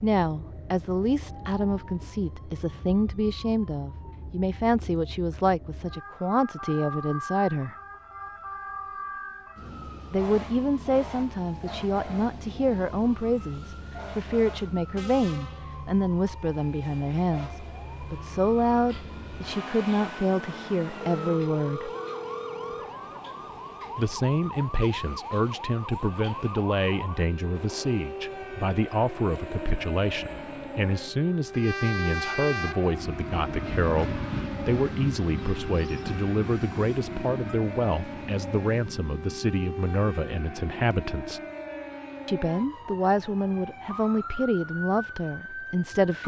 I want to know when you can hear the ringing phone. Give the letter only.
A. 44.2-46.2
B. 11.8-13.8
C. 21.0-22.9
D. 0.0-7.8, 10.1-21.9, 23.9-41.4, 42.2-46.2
C.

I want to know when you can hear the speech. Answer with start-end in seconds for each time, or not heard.
0.0-7.8, 10.1-21.9, 23.9-41.4, 42.2-46.2.